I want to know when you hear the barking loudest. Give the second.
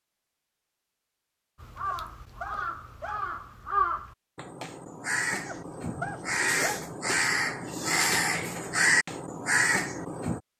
6 s.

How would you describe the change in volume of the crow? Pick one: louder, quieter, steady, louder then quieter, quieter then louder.
louder.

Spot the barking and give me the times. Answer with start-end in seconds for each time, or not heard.
1.9-3.3, 5.5-6.8.